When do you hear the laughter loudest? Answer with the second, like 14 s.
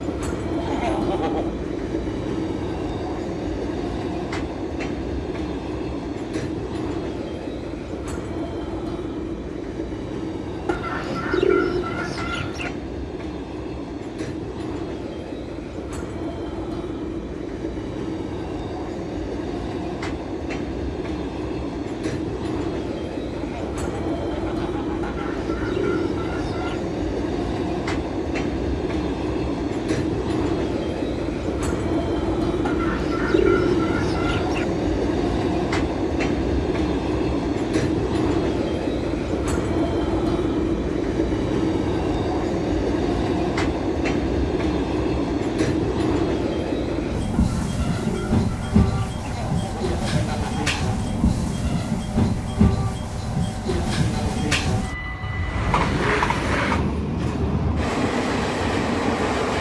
1 s.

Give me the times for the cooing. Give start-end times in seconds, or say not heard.
10.7-12.7, 25.0-26.9, 32.6-34.6, 47.3-49.2.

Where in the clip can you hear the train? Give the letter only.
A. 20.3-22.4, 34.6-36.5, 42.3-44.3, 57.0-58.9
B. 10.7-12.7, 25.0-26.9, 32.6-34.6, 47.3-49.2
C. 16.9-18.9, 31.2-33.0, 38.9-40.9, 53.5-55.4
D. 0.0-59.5
D.